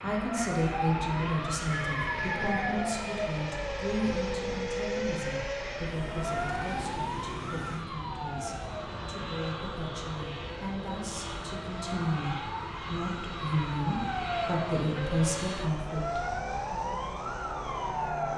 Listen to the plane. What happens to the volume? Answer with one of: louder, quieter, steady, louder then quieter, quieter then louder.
steady.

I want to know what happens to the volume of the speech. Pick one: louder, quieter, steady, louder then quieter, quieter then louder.
quieter then louder.